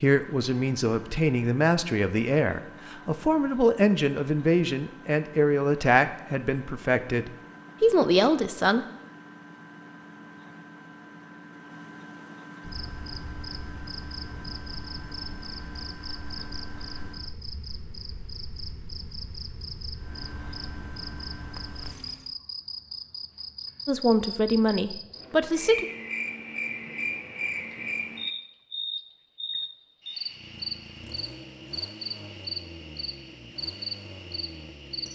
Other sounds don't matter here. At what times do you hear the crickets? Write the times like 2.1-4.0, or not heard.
12.6-35.1.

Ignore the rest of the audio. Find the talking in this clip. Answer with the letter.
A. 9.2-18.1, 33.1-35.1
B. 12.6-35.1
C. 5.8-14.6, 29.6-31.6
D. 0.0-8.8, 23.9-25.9
D.